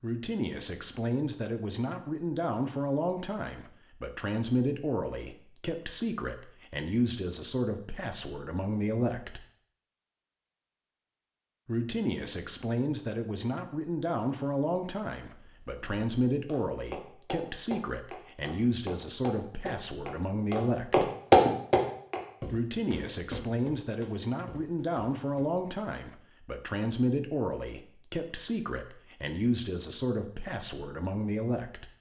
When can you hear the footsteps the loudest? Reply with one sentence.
The loudest moment of the footsteps is at 21 seconds.